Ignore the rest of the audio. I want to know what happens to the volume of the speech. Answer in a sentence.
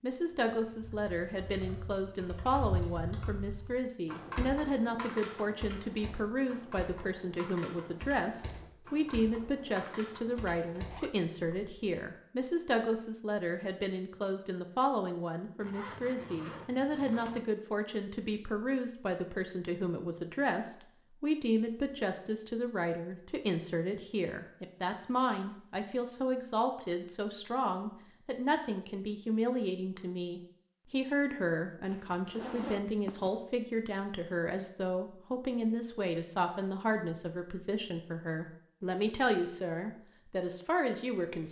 The loudness of the speech stays about the same.